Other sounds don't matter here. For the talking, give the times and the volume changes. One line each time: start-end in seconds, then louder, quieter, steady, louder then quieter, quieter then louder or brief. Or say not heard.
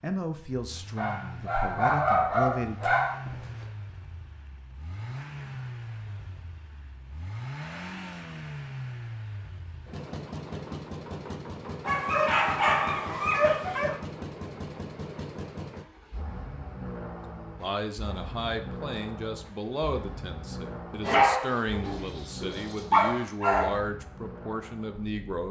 0.0-3.0 brief
17.6-25.4 steady.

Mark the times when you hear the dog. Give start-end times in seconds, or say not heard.
0.9-3.5, 11.8-13.9, 21.0-23.8.